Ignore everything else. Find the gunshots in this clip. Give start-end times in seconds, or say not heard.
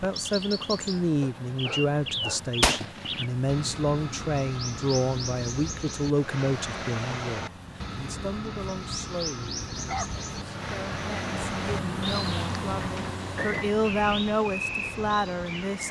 2.6-3.2.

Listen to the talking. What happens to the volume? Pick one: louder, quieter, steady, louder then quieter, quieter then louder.
quieter then louder.